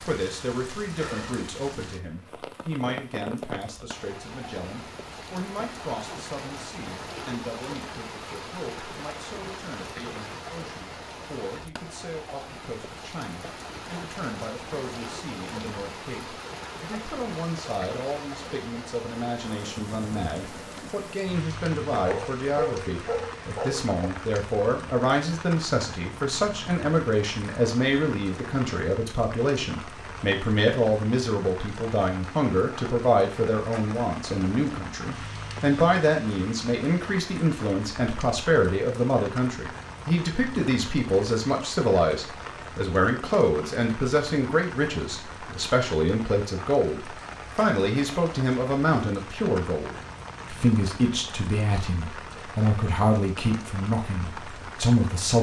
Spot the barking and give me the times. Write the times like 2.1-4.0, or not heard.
22.1-24.1.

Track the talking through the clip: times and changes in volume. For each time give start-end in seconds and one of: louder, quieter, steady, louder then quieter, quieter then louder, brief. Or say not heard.
0.0-55.3 louder.